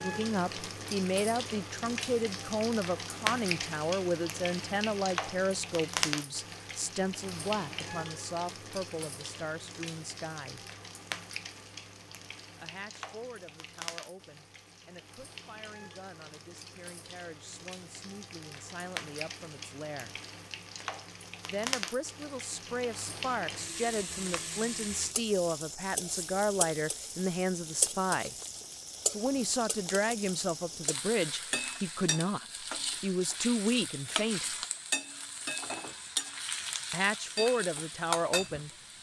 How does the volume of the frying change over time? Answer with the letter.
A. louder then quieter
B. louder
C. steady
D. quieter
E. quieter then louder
E.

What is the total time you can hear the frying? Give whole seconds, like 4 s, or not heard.
39 s.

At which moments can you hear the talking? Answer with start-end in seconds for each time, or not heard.
0.0-10.7, 12.6-20.1, 21.5-28.4, 29.1-34.5, 36.9-38.7.